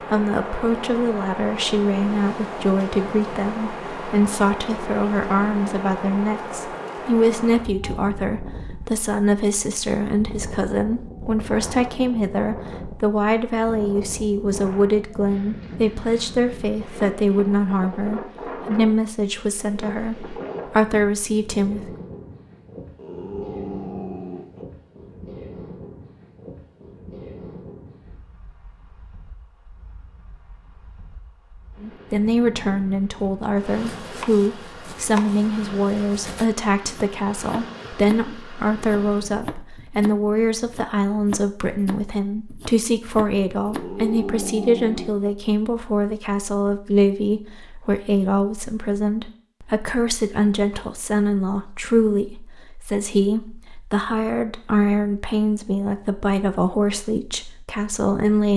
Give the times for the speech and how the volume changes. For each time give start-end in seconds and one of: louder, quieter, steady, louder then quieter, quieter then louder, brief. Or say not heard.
0.1-21.9 steady
31.8-58.5 steady.